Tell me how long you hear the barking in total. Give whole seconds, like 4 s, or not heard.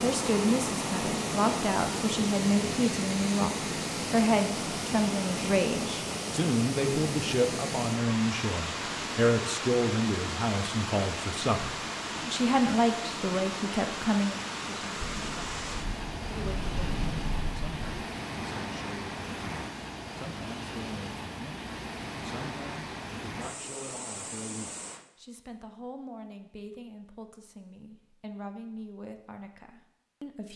not heard.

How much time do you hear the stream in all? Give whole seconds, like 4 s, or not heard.
25 s.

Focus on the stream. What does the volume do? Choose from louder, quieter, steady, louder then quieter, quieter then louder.
quieter.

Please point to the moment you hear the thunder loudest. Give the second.
17 s.